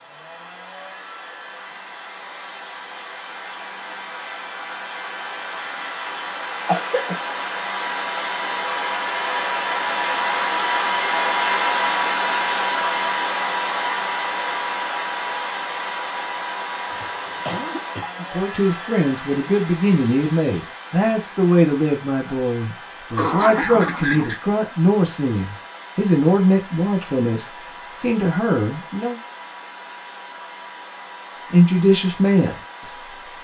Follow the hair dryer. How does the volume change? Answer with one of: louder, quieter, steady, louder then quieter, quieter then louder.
louder then quieter.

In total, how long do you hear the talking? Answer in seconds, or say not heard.
13 s.